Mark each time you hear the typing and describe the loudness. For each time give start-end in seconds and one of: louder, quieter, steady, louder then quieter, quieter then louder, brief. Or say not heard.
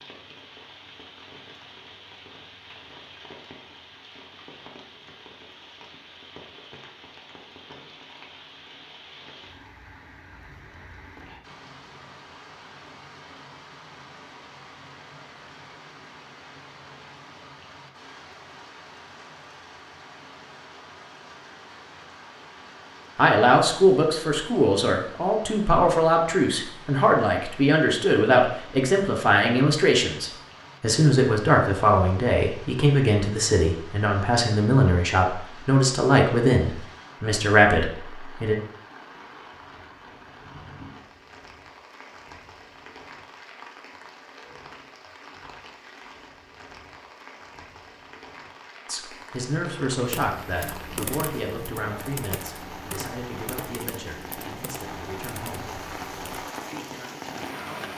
50.0-56.5 quieter.